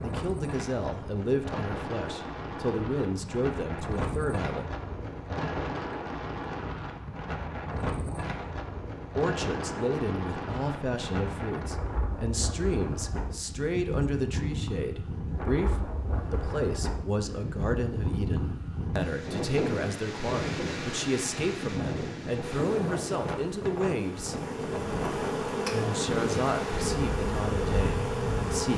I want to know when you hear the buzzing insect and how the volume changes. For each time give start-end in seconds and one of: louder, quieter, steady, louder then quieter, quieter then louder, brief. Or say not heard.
22.4-28.7 louder.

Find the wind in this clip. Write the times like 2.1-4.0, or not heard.
0.0-28.7.